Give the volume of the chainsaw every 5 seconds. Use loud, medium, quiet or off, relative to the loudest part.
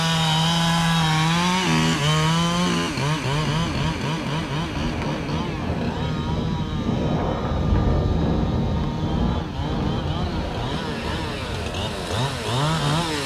loud, medium, medium.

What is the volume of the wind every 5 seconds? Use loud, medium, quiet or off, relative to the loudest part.
medium, loud, medium.